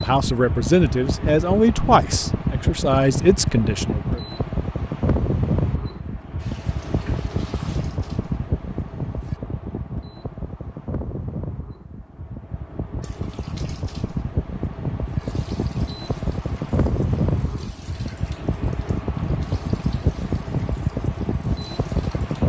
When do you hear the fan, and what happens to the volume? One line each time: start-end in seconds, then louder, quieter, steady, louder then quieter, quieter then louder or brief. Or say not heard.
0.0-22.4 quieter then louder.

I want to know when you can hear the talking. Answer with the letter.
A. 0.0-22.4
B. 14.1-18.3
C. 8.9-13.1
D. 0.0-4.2
D.